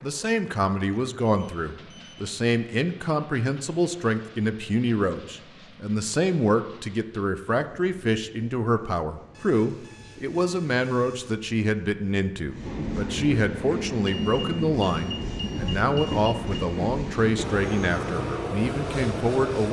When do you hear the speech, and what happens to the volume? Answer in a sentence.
You can hear the speech from 0.0 to 19.6 s, at a steady volume.